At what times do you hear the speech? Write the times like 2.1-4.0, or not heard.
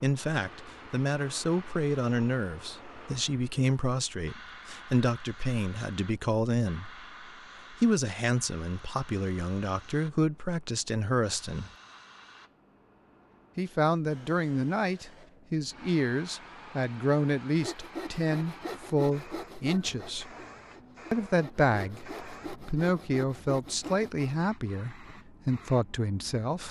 0.0-6.9, 7.7-11.7, 13.6-20.3, 21.1-26.6.